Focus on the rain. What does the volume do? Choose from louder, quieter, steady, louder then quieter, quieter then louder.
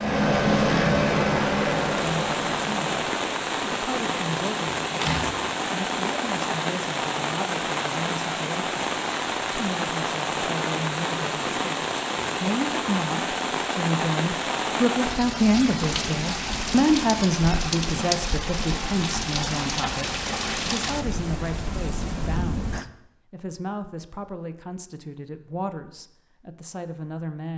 steady.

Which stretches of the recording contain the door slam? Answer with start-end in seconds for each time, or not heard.
5.0-5.5.